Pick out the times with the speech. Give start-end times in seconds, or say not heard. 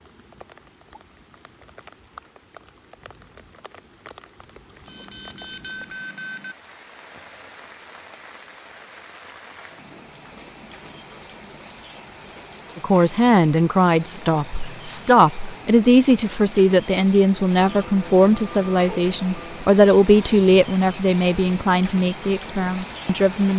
12.8-23.5.